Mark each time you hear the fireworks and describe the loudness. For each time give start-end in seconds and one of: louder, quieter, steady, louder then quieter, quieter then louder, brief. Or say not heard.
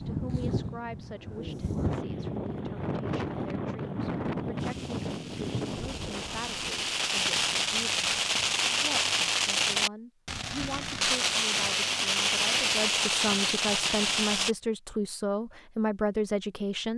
4.5-14.6 louder.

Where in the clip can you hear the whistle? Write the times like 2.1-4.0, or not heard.
not heard.